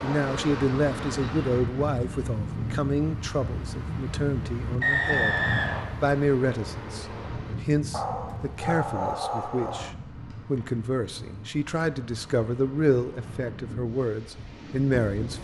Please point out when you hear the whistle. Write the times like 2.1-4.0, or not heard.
4.8-5.9.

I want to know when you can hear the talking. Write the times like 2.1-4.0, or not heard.
0.0-5.4, 6.0-15.3.